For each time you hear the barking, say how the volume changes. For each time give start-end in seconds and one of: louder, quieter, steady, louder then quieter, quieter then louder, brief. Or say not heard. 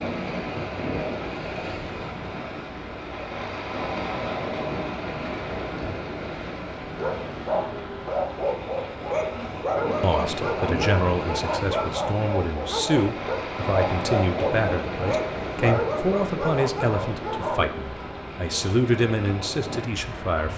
7.0-17.6 steady.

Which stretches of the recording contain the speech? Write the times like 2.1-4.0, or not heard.
10.0-20.5.